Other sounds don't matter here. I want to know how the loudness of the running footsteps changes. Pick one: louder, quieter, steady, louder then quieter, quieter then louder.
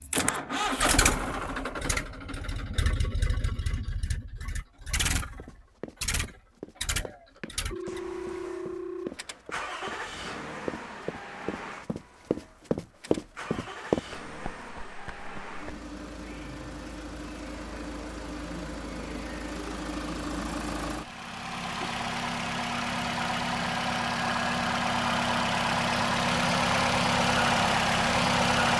louder then quieter.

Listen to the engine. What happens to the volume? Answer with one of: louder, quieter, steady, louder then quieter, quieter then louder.
quieter then louder.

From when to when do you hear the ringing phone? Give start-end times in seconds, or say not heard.
7.7-9.1.